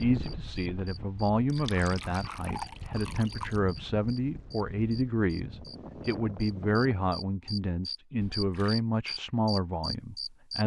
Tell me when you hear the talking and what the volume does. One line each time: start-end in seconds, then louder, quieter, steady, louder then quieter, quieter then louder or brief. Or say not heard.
0.0-10.6 steady.